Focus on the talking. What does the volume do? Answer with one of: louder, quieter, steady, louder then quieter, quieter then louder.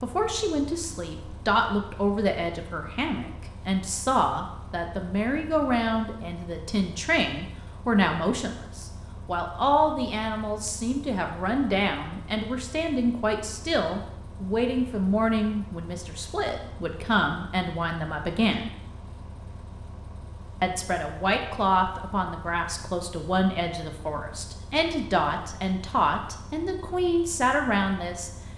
steady.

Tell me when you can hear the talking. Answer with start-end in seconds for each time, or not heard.
0.0-18.7, 20.6-28.3.